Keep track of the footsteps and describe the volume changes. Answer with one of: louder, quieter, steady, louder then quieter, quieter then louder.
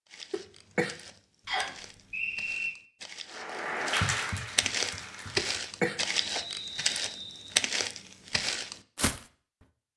louder.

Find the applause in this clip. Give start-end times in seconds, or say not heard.
3.3-5.5.